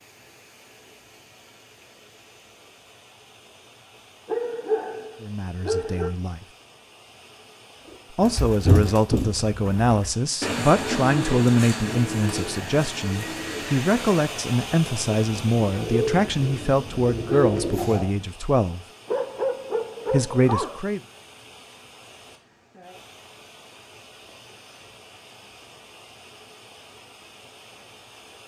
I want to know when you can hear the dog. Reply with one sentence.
The dog can be heard from 4.2 to 6.2 s and from 19.1 to 20.8 s.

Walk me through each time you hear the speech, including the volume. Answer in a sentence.
You can hear the speech briefly from 5.2 to 6.5 s; from 8.1 to 18.8 s, at a steady volume; and briefly from 20.1 to 21.0 s.